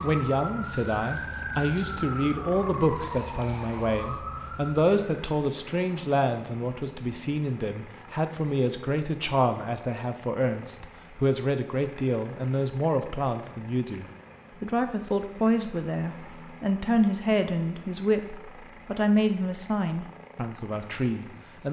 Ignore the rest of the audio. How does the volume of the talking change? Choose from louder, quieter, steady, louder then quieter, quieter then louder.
steady.